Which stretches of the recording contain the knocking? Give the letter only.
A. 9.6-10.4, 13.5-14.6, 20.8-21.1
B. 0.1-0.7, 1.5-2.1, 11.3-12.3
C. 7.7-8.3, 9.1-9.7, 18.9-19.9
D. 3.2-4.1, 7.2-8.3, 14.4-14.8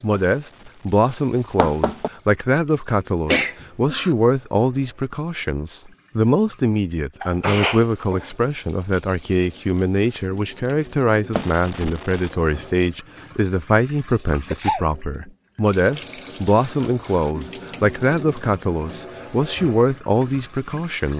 B.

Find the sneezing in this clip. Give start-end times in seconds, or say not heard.
3.2-4.1, 7.2-8.3, 14.4-14.8.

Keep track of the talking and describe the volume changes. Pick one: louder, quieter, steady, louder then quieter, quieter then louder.
steady.